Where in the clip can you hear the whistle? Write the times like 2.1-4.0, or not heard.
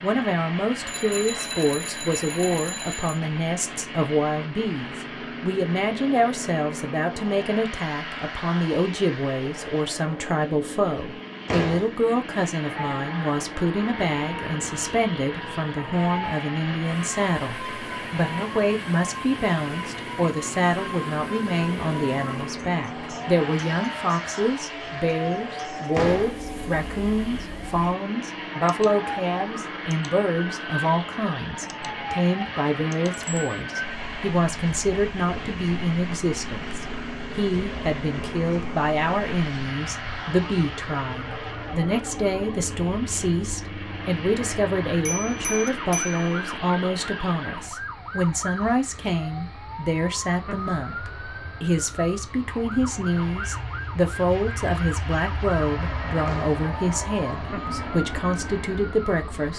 not heard.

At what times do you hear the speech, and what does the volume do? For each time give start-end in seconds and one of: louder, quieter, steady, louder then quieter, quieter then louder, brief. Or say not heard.
0.0-59.5 steady.